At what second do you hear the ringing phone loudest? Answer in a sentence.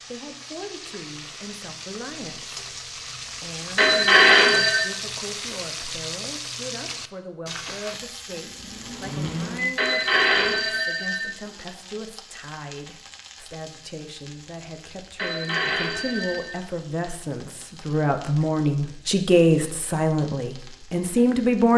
The loudest moment of the ringing phone is at 4 seconds.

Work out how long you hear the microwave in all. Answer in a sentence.
You can hear the microwave for 2 seconds altogether.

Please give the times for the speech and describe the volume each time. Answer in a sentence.
You can hear the speech from 0.1 to 21.7 s, getting louder.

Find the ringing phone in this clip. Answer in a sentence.
The ringing phone can be heard from 3.8 to 4.8 s, from 9.8 to 11.3 s and from 15.2 to 16.6 s.